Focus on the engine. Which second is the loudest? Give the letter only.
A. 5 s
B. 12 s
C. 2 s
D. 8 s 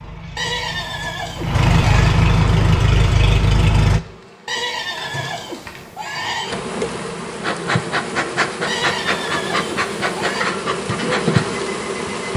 C.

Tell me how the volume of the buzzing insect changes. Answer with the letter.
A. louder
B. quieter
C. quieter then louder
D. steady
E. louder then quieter
A.